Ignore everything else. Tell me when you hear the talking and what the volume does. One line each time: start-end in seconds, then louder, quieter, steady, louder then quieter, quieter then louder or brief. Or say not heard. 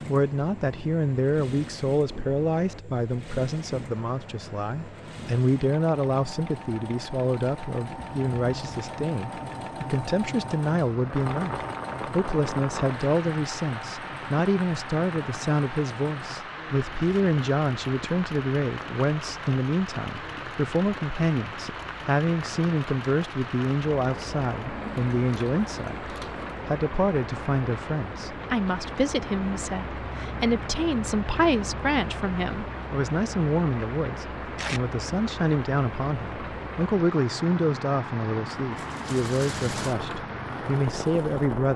0.1-41.7 steady.